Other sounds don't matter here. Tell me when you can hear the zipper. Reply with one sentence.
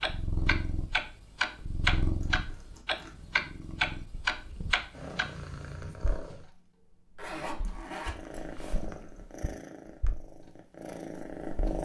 The zipper can be heard from 2.2 to 3.2 s and from 7.2 to 8.8 s.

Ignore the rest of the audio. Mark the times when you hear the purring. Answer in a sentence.
The purring can be heard from 0.0 to 6.5 s and from 8.1 to 11.8 s.